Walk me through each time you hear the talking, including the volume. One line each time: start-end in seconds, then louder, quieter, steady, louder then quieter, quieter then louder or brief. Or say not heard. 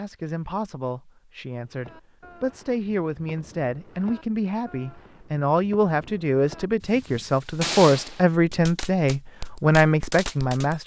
0.0-10.8 louder.